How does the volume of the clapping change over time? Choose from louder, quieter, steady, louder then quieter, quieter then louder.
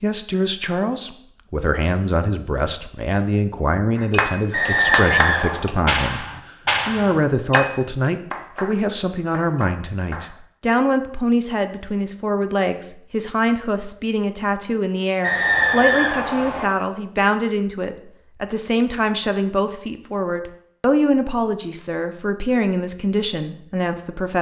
quieter.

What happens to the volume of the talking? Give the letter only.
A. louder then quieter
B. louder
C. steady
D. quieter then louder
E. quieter
C.